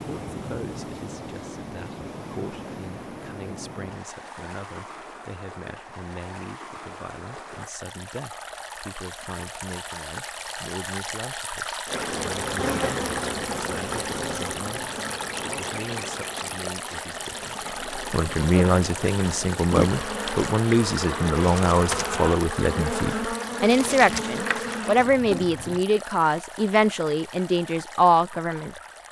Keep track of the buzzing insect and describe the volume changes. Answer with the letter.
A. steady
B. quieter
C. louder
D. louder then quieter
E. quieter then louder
E.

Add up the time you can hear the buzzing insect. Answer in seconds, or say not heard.
14 s.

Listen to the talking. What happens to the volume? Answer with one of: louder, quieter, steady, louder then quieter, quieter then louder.
louder.